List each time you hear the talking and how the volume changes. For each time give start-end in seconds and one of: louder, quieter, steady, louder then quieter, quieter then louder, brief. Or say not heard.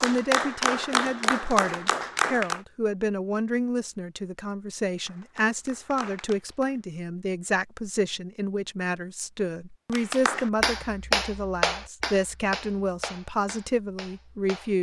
0.0-14.7 steady.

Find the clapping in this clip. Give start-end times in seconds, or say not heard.
0.0-2.6, 5.0-6.8, 9.9-14.7.